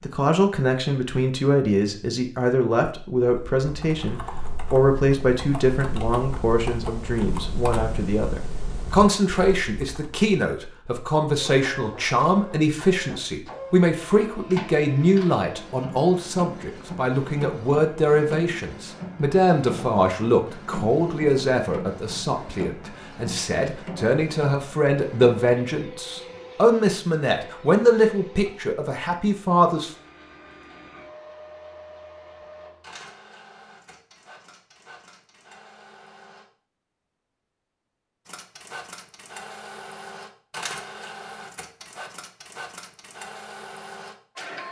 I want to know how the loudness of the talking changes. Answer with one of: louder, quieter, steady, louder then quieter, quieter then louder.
steady.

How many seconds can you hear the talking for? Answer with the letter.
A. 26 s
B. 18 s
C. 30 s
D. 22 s
C.